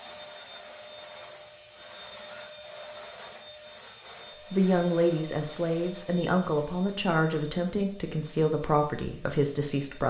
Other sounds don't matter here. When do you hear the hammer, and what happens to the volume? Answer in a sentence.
You can't hear the hammer here.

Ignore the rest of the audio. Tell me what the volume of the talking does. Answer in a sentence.
The loudness of the talking stays about the same.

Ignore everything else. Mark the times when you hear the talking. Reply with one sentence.
The talking can be heard from 4.5 to 10.0 s.